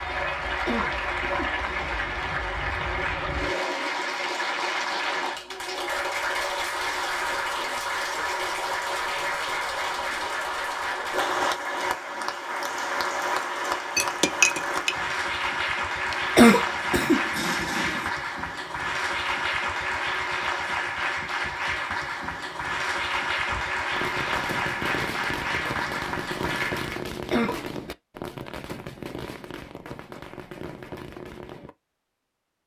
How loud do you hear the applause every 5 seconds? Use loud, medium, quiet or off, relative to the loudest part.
loud, loud, loud, loud, loud, loud, off.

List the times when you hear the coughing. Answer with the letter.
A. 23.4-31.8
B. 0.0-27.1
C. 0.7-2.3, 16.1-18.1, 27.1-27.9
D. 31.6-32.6
C.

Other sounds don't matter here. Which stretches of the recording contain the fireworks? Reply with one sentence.
The fireworks can be heard from 23.4 to 31.8 s.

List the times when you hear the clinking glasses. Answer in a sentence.
You can hear the clinking glasses from 13.9 to 14.9 s.